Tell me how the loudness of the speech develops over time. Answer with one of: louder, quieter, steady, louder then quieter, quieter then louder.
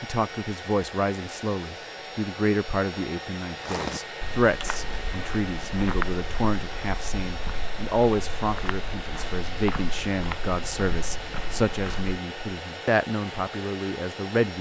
steady.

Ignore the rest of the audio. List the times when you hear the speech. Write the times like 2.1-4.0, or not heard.
0.0-14.5.